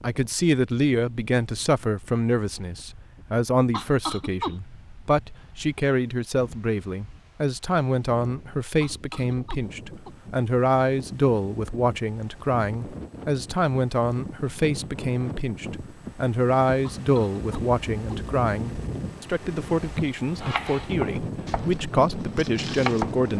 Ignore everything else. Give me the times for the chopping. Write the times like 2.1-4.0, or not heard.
19.9-23.1.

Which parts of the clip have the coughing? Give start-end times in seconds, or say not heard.
3.7-4.5, 8.8-10.2, 16.9-18.2.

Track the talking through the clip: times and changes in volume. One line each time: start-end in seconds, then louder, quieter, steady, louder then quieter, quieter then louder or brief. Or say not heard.
0.0-23.3 steady.